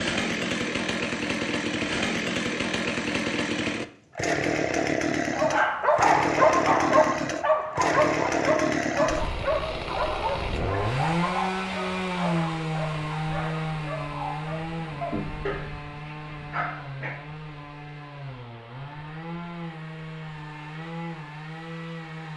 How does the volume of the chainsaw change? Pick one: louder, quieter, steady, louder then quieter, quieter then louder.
quieter.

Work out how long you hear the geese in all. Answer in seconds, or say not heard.
not heard.